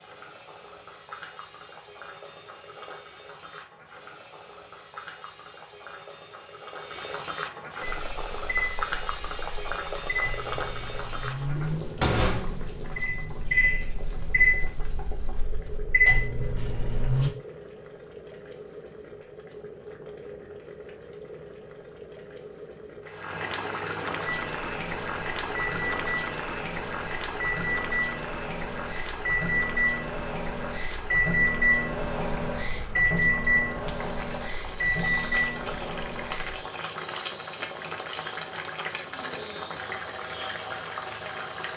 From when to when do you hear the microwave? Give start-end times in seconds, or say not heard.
7.8-17.3, 24.2-36.6.